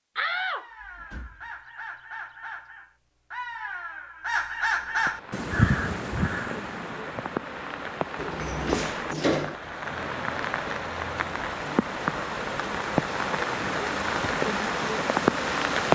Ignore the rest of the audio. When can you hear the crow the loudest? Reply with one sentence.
The loudest moment of the crow is at 6 seconds.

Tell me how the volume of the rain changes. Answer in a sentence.
The volume of the rain goes up.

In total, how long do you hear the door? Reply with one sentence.
The door can be heard for 3 seconds in total.